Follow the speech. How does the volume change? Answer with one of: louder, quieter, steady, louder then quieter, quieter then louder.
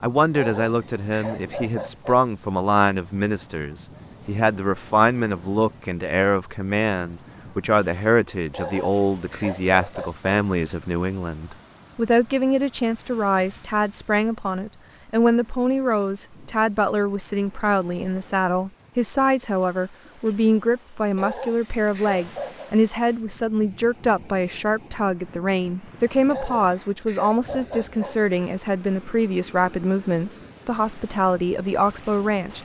steady.